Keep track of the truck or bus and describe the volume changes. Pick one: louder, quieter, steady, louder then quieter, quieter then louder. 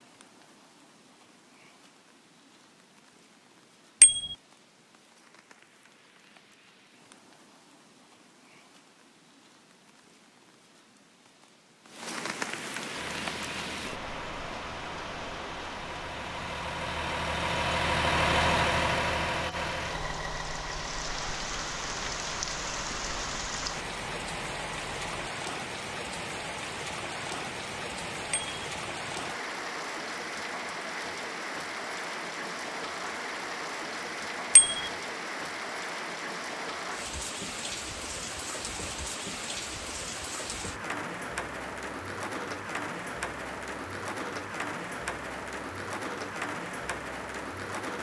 louder then quieter.